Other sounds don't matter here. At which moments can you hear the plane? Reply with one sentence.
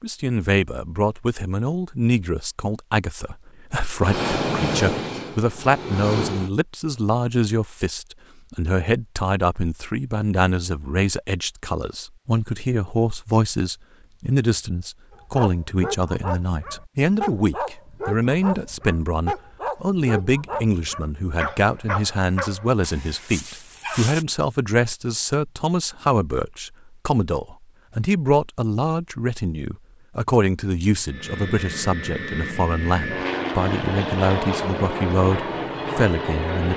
The plane can be heard from 4.0 to 6.5 s and from 31.1 to 36.7 s.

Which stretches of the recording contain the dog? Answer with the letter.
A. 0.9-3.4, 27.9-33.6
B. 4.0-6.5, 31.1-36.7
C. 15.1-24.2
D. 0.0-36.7
C.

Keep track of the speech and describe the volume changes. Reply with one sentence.
The loudness of the speech stays about the same.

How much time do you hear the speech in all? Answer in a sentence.
The speech can be heard for 37 seconds in total.